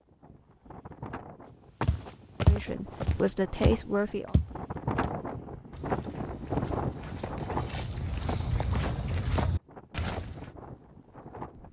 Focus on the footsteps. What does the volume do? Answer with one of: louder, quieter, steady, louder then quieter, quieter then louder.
quieter then louder.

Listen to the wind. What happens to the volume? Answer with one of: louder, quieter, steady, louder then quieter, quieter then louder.
louder then quieter.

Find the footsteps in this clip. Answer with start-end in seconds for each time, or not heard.
1.8-10.5.